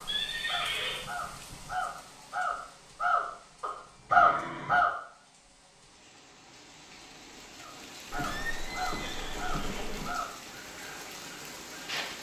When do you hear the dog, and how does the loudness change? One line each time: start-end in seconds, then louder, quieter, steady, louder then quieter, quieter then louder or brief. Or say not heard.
not heard.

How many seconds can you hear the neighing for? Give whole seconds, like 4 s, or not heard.
4 s.